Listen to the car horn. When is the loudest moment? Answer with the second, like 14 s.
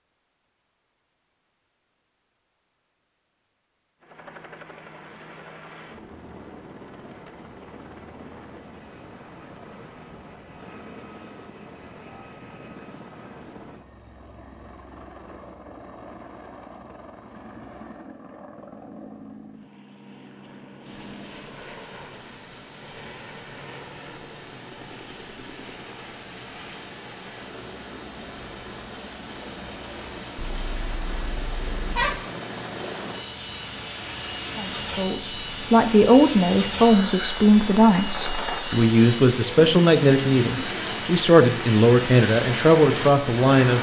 32 s.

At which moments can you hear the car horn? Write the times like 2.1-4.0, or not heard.
30.4-32.1.